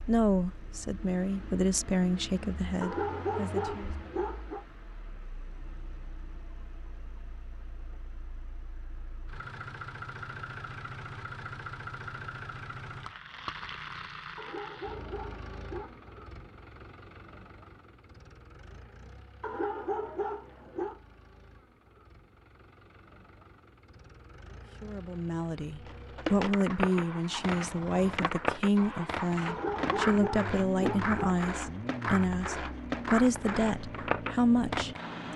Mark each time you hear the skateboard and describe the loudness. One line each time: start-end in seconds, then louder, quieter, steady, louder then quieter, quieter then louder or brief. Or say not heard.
25.9-35.2 steady.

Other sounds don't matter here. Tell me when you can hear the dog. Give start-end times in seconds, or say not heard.
2.8-4.7, 14.3-15.9, 19.4-21.0, 29.4-31.4.